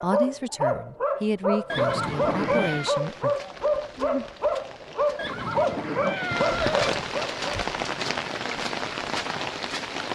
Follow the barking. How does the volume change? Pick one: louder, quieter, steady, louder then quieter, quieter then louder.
steady.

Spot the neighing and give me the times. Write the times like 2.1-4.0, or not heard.
1.6-3.0, 5.2-7.0.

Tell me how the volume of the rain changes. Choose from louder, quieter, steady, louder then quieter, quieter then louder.
louder.